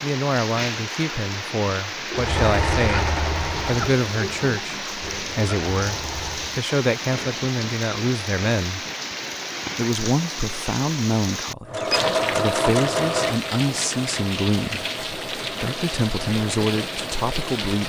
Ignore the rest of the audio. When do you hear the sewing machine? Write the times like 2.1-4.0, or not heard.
2.1-6.7, 11.7-17.7.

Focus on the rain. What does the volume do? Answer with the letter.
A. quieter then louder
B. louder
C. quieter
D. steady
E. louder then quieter
D.